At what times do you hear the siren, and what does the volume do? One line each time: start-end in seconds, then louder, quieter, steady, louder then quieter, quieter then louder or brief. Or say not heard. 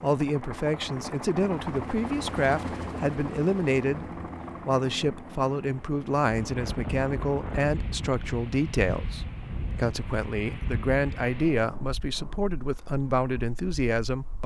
not heard.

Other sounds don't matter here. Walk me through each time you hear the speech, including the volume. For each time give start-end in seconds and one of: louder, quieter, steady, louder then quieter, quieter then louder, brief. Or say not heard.
0.0-14.4 steady.